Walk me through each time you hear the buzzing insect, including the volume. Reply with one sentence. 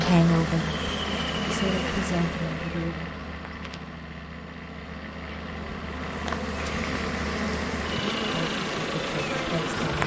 You can hear the buzzing insect from 0.0 to 10.0 s, getting quieter then louder.